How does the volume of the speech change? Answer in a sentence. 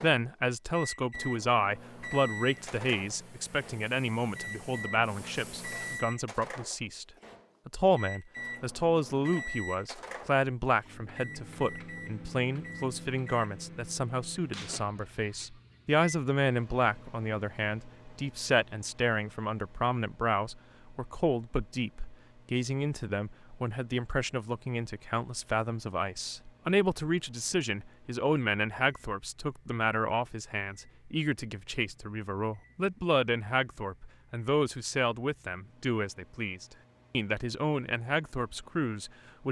The volume of the speech stays about the same.